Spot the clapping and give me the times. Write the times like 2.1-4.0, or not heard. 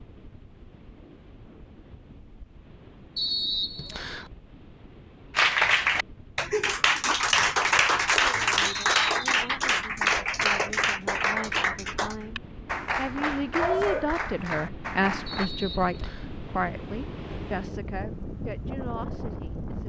5.3-15.5.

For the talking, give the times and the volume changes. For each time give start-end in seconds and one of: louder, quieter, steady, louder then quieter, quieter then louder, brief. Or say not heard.
8.2-19.8 louder then quieter.